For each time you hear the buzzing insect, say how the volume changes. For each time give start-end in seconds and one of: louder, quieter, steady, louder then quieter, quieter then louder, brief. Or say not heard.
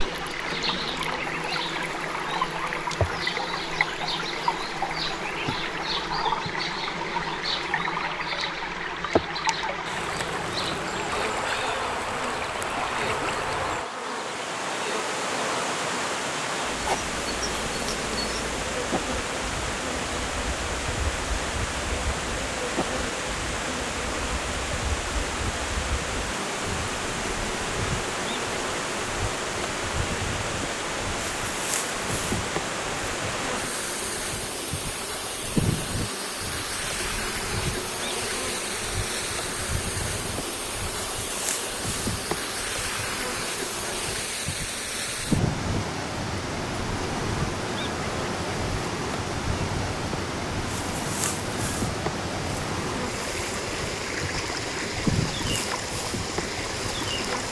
0.0-57.4 steady.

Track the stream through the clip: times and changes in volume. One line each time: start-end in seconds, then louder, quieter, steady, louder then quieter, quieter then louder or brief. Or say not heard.
0.0-57.4 steady.